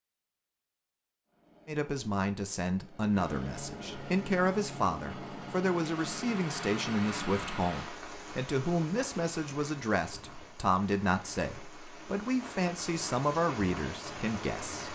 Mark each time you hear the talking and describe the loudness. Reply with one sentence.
The talking can be heard from 1.6 to 14.9 s, at a steady volume.